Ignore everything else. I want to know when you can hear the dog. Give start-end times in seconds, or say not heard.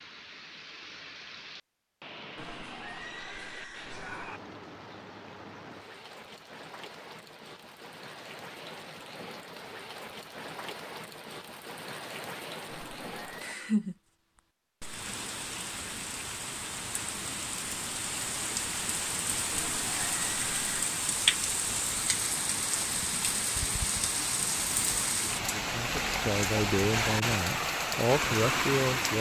not heard.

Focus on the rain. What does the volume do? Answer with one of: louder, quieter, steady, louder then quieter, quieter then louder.
louder.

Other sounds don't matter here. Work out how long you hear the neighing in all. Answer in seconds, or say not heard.
4 s.